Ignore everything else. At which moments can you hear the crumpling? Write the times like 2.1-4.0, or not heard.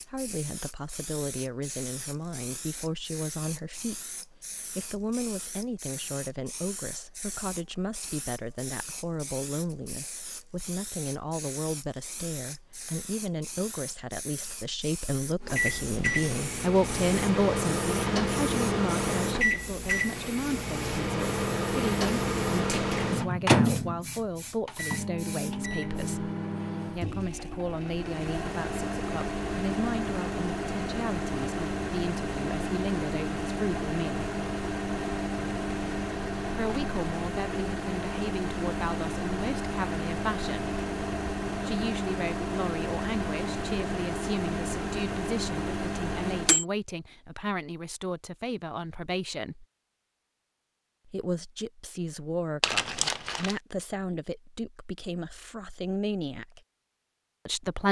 52.6-53.5.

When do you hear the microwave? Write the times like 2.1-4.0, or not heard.
15.4-46.6.